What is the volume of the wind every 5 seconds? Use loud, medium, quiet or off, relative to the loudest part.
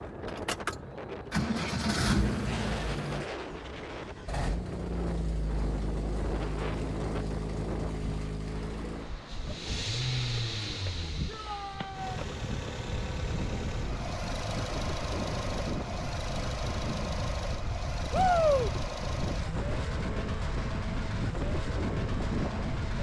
medium, medium, medium, loud, loud.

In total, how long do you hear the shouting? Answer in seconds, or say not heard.
2 s.